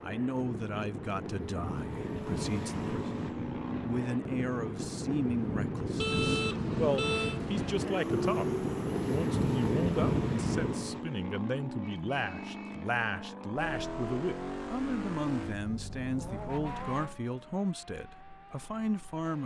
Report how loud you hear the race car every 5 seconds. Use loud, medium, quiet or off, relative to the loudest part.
loud, loud, loud, medium.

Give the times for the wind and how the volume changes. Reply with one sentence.
The wind can be heard from 0.0 to 11.0 s, getting louder.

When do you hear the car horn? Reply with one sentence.
The car horn can be heard from 6.0 to 7.4 s and from 11.8 to 12.9 s.